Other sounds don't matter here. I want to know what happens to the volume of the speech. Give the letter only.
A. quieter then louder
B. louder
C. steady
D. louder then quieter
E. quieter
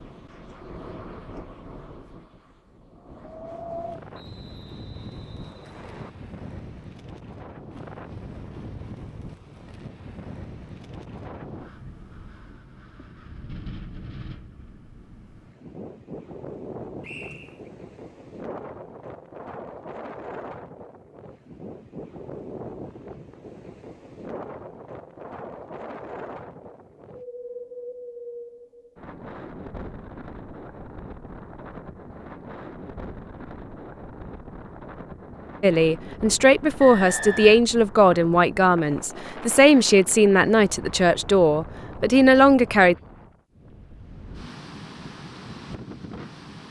C.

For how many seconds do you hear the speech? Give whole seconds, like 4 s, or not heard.
7 s.